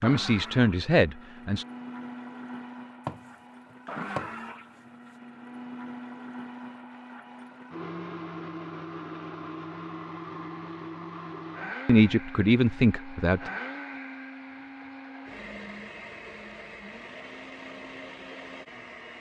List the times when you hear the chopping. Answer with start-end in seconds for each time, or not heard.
3.0-4.3.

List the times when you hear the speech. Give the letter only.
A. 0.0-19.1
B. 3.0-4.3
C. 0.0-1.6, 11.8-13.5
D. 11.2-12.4
C.